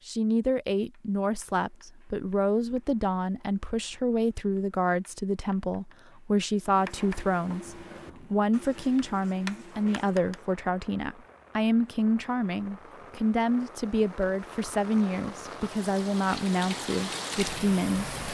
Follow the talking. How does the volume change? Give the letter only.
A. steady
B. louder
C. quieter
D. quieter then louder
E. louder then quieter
A.